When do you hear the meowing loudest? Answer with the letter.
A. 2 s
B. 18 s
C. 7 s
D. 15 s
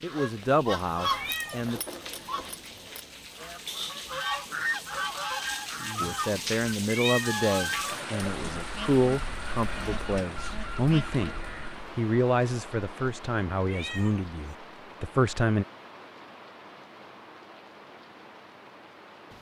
C.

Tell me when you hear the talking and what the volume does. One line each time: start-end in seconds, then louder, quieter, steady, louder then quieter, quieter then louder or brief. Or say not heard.
0.0-1.8 brief
6.0-15.7 steady.